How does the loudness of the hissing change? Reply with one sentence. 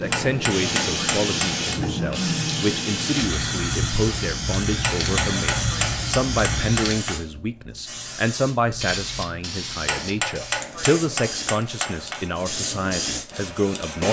The volume of the hissing goes down.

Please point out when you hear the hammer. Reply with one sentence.
The hammer can be heard from 0.1 to 1.8 s, from 4.8 to 7.2 s and from 9.8 to 12.2 s.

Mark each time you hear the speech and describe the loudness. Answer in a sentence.
You can hear the speech from 0.0 to 14.0 s, at a steady volume.